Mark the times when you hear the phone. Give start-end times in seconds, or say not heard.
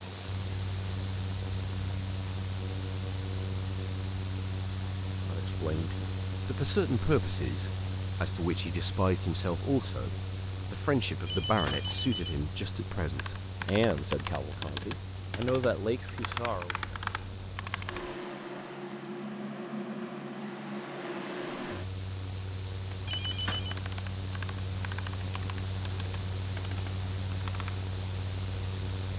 11.2-12.3, 23.1-23.8.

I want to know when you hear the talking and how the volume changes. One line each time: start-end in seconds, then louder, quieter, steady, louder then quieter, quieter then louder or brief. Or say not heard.
5.2-16.8 steady.